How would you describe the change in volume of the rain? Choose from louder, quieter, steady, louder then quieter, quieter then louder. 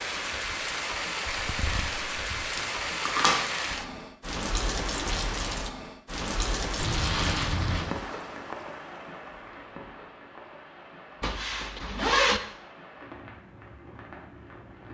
quieter.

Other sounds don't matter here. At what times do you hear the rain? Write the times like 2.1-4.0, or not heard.
0.0-14.8.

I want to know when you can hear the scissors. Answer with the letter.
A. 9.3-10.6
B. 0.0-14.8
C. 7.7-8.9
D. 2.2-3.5
D.